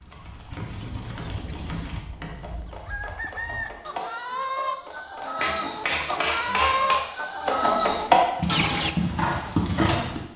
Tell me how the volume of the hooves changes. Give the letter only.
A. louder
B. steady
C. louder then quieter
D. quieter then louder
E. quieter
A.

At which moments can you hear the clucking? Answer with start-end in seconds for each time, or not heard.
0.5-8.9.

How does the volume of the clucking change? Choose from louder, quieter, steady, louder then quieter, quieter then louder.
louder.